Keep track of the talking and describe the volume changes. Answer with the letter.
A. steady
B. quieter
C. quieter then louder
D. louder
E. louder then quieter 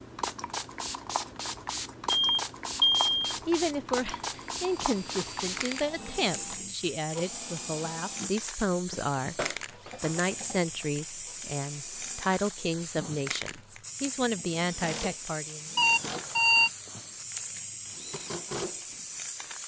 A.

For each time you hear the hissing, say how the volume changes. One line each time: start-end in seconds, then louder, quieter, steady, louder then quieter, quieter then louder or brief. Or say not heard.
0.0-19.6 steady.